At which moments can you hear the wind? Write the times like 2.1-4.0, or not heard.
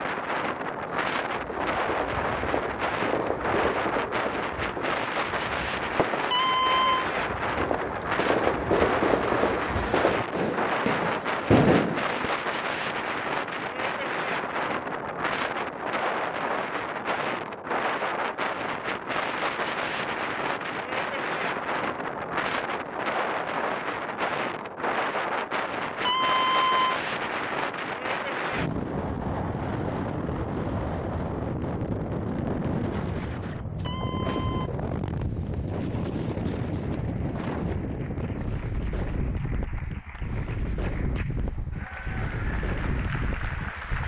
0.0-44.0.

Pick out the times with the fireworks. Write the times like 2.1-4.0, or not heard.
0.9-12.3.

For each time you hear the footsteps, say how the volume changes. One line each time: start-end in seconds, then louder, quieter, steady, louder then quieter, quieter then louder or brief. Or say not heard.
not heard.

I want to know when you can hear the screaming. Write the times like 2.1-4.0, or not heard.
6.3-7.0, 26.1-27.0, 33.8-34.7.